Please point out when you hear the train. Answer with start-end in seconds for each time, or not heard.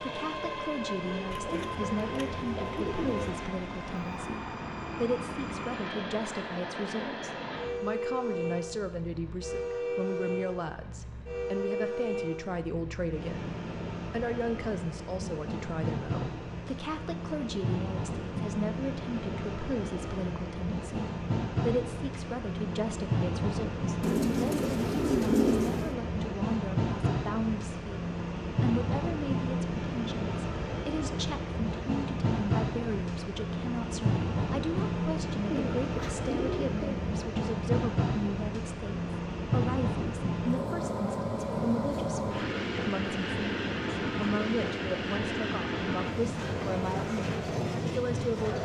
0.0-48.6.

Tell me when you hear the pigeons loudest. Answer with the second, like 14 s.
25 s.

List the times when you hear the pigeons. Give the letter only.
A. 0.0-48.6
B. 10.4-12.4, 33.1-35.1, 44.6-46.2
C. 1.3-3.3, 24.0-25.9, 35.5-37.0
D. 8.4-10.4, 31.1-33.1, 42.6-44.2
C.